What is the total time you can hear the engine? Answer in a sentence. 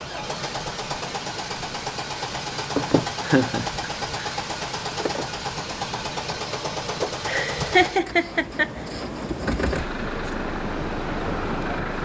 You can hear the engine for 12 seconds altogether.